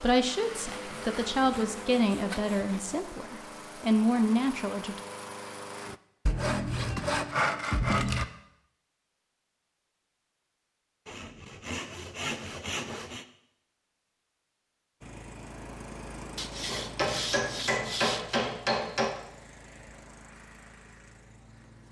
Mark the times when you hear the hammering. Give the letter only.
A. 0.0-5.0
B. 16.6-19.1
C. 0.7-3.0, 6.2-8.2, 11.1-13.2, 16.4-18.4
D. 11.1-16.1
B.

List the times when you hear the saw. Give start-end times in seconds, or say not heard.
0.7-3.0, 6.2-8.2, 11.1-13.2, 16.4-18.4.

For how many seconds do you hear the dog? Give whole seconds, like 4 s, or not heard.
not heard.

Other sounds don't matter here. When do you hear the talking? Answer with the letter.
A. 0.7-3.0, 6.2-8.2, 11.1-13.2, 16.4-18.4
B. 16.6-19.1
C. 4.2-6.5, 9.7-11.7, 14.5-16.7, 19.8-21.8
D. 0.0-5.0
D.